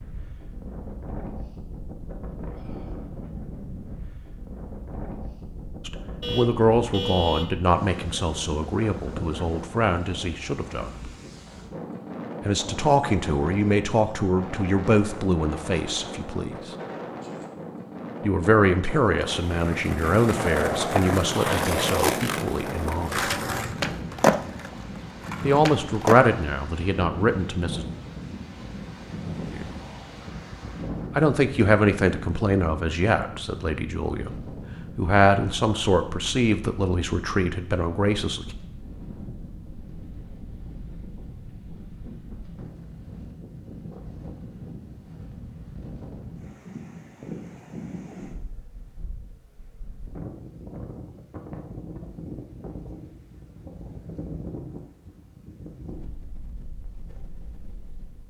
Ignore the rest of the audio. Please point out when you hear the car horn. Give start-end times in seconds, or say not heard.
6.2-7.5.